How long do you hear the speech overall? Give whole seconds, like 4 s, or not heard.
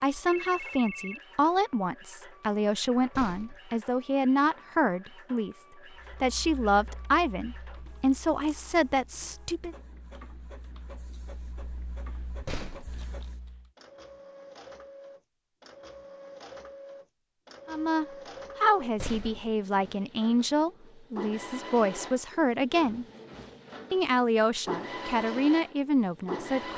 17 s.